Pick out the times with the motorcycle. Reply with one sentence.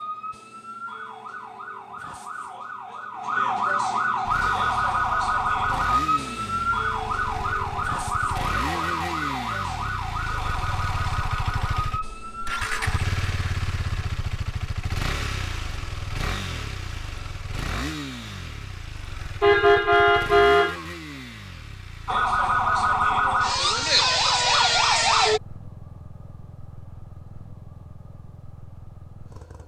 You can hear the motorcycle from 4.2 to 29.6 s.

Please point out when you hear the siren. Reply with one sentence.
The siren can be heard from 0.0 to 13.0 s and from 22.1 to 25.4 s.